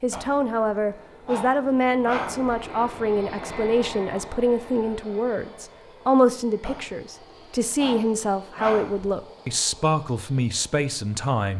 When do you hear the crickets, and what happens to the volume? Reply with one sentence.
You can't hear the crickets here.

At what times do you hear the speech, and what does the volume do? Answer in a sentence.
You can hear the speech from 0.0 to 11.5 s, at a steady volume.